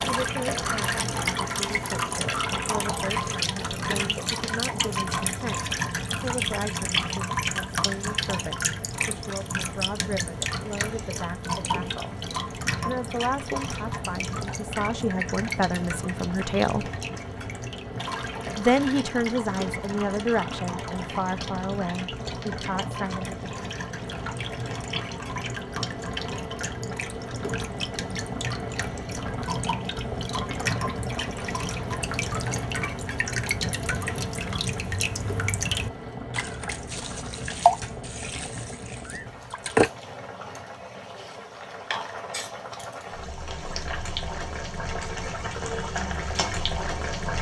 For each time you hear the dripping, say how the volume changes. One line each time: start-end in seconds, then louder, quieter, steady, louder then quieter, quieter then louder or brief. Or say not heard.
0.0-39.9 quieter then louder.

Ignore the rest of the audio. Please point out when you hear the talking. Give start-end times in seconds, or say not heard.
0.1-12.2, 12.8-16.9, 18.6-23.3.